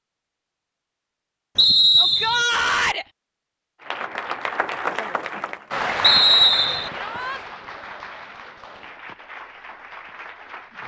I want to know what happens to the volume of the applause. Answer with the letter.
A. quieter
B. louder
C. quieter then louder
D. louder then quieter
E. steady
A.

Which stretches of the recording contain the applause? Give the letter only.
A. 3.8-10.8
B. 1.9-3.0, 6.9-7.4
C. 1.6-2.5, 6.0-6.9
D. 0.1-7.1
A.